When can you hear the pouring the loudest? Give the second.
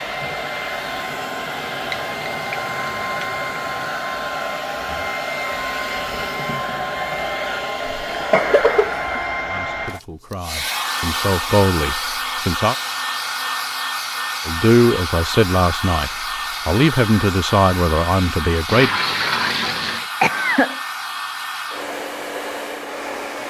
19 s.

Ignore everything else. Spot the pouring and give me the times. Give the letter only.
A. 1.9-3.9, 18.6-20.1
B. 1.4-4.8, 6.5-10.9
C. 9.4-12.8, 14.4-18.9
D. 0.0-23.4
A.